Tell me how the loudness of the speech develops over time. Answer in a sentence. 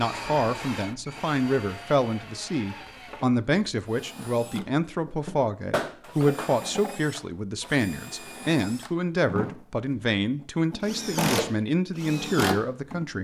The loudness of the speech stays about the same.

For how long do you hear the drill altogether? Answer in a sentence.
You can hear the drill for 12 seconds altogether.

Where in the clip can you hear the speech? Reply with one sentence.
The speech can be heard from 0.0 to 13.1 s.